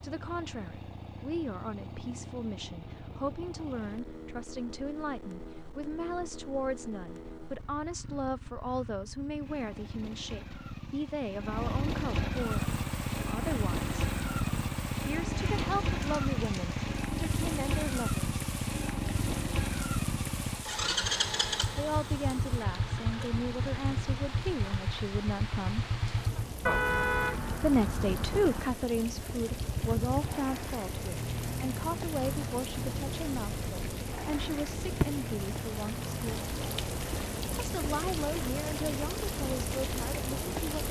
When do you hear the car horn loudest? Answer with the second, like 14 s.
27 s.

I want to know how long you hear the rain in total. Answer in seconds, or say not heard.
28 s.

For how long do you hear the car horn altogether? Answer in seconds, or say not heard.
2 s.